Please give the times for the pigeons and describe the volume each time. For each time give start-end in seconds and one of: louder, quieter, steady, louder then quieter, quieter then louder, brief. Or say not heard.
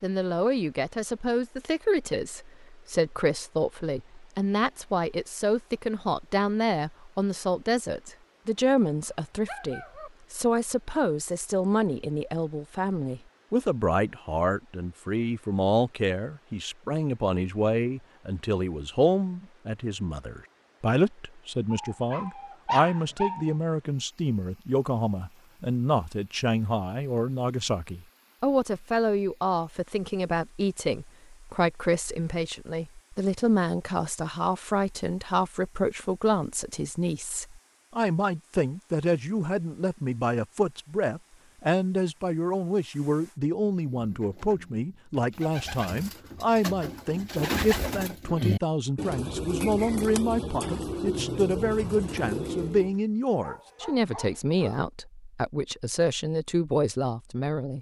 43.9-53.0 louder.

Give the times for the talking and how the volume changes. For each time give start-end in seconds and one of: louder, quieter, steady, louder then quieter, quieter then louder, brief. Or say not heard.
0.0-57.7 steady.